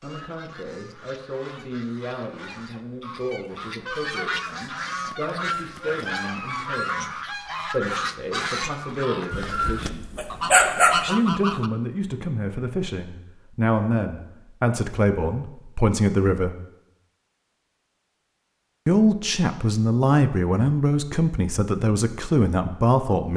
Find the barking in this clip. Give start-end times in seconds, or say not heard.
9.3-11.0.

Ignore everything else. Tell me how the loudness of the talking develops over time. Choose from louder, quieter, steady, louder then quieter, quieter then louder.
louder.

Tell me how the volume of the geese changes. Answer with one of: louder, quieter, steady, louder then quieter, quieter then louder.
louder.